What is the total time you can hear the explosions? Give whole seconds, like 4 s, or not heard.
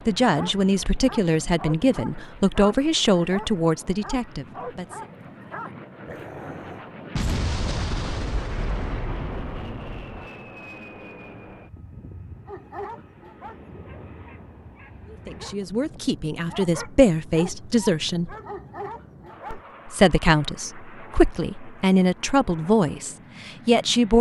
3 s.